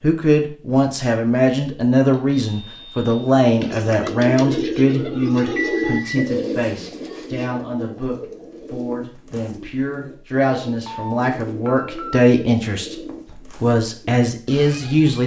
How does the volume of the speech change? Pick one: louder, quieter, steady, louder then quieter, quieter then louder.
quieter then louder.